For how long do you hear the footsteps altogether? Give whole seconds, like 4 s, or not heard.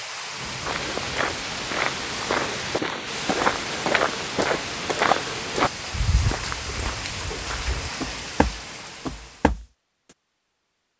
9 s.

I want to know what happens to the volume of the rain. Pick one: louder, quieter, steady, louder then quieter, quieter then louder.
steady.